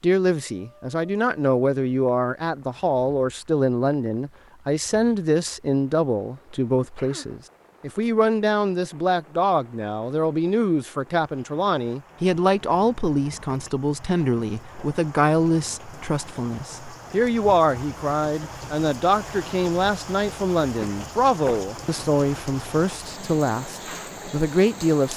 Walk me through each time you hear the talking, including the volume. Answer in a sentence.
You can hear the talking from 0.0 to 25.1 s, at a steady volume.